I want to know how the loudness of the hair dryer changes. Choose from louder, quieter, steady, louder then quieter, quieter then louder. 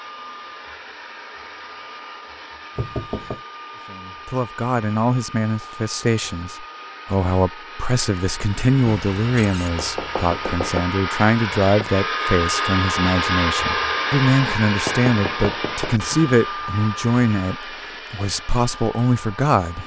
louder then quieter.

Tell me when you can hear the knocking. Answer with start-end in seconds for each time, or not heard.
2.8-3.4, 8.8-10.8, 14.8-15.9.